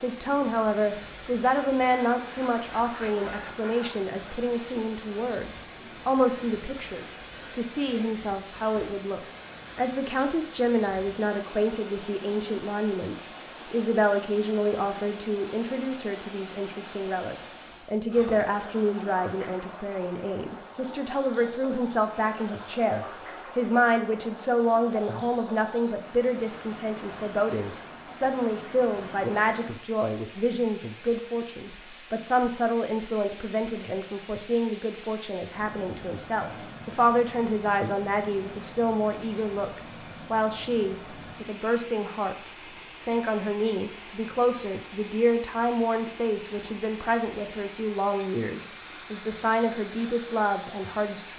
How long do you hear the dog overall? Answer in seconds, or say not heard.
not heard.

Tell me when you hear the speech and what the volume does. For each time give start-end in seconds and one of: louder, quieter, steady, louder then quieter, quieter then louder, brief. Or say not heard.
0.0-51.3 steady.